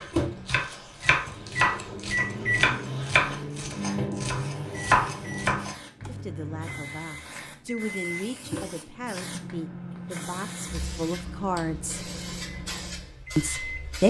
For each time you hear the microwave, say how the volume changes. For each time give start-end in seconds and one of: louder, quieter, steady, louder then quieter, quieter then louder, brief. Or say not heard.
0.0-13.9 quieter.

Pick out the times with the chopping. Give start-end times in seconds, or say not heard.
0.0-6.1.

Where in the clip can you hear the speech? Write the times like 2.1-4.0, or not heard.
6.0-12.0, 13.3-14.0.